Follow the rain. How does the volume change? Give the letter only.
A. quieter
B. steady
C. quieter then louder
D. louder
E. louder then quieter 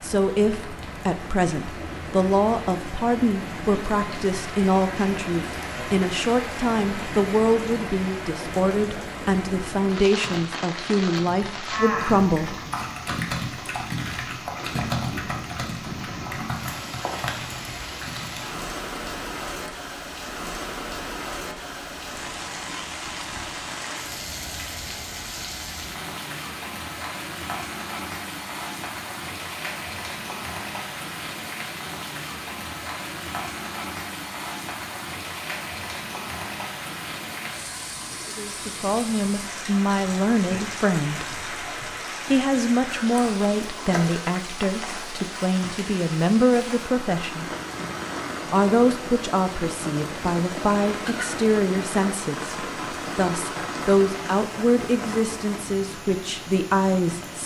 B.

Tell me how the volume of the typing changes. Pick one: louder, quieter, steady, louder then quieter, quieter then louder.
louder then quieter.